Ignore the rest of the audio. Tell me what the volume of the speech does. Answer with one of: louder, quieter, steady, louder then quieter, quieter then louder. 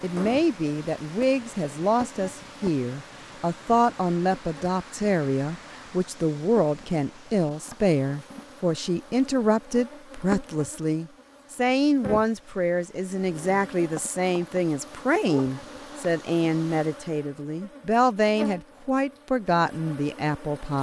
steady.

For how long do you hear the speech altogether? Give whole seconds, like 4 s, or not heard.
21 s.